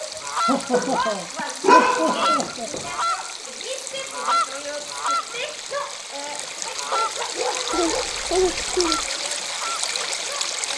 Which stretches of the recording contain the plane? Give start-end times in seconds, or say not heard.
not heard.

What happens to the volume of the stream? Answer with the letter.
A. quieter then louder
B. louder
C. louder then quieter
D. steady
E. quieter
B.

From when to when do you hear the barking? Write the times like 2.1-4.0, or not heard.
0.7-2.5, 6.9-8.3.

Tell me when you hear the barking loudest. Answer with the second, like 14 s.
2 s.